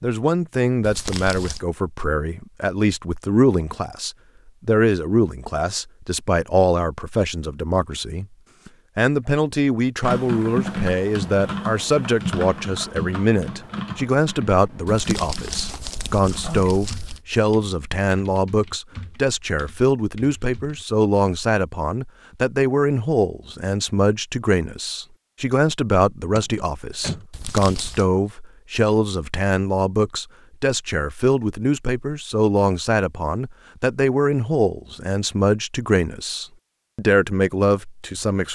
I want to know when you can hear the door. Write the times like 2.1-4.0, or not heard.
26.4-27.2.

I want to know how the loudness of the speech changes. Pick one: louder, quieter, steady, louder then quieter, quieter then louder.
steady.